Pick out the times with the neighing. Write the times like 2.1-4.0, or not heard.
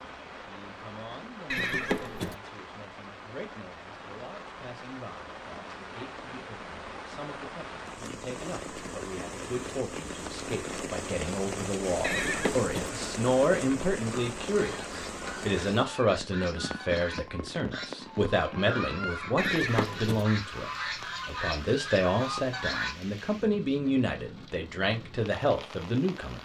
1.5-2.4, 12.0-12.9, 19.4-20.2.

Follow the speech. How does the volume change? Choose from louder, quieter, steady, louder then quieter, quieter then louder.
louder.